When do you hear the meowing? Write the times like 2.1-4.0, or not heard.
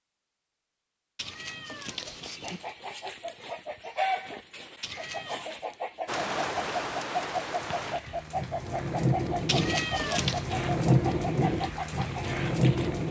1.1-2.8, 4.8-5.5, 9.4-10.4.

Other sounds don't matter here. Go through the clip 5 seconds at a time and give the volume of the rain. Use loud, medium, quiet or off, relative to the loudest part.
off, medium, loud.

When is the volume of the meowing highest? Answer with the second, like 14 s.
10 s.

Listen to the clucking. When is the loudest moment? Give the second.
4 s.